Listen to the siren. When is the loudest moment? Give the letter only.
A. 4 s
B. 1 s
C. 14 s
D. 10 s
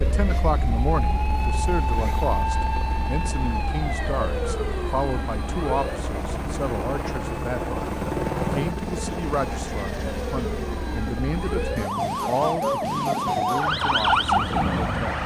C.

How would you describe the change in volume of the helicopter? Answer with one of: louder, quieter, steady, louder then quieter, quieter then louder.
louder then quieter.